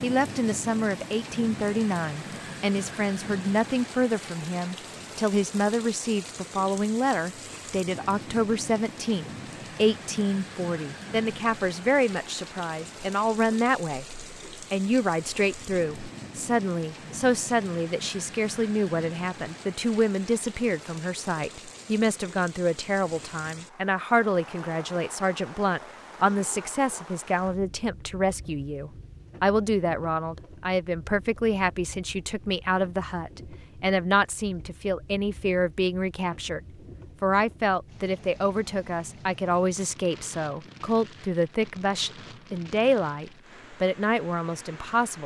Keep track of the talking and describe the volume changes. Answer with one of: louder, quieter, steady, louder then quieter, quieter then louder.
steady.